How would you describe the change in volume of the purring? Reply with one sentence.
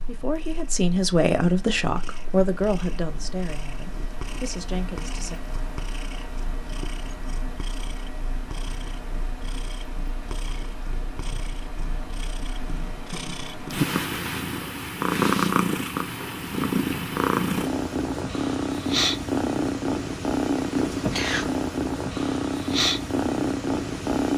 The loudness of the purring goes up.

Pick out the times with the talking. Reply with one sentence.
You can hear the talking from 0.1 to 5.4 s.